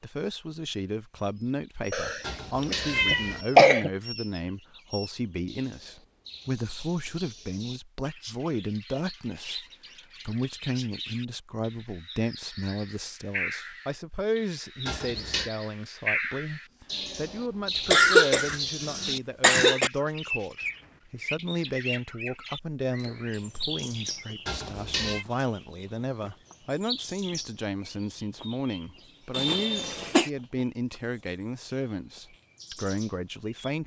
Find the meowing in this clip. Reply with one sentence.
The meowing can be heard from 2.2 to 3.5 s, from 14.8 to 15.5 s and from 24.4 to 25.2 s.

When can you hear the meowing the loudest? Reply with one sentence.
The loudest moment of the meowing is at 3 seconds.